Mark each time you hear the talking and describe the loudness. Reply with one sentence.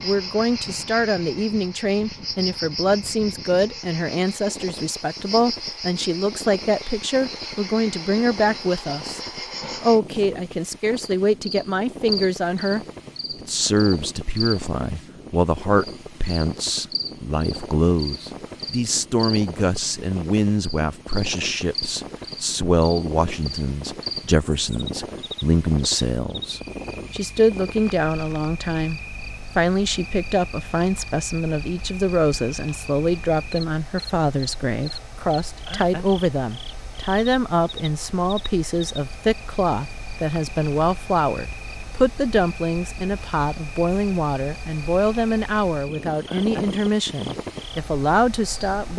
You can hear the talking from 0.0 to 9.2 s, at a steady volume; and from 9.8 to 48.9 s, at a steady volume.